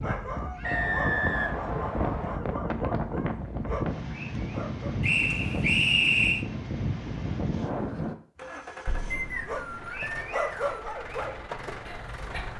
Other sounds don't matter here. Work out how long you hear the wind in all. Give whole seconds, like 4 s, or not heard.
8 s.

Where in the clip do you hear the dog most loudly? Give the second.
11 s.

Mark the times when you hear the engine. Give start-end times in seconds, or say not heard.
8.3-12.5.